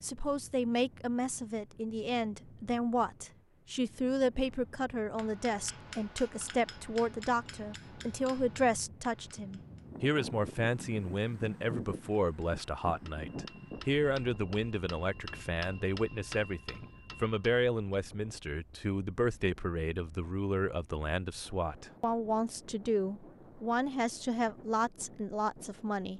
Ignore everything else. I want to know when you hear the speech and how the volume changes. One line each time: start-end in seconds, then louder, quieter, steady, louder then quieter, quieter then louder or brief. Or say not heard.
0.0-26.1 steady.